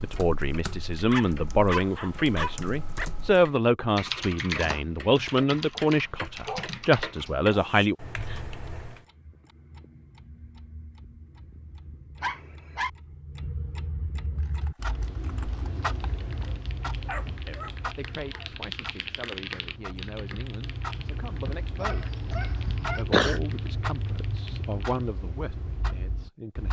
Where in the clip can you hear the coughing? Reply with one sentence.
The coughing can be heard from 22.3 to 23.4 s.